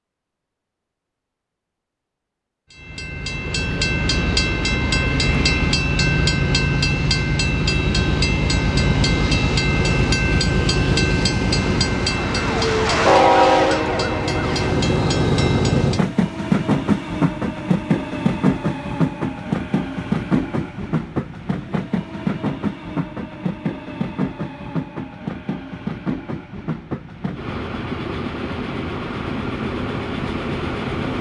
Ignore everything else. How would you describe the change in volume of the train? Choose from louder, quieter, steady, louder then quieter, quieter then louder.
quieter.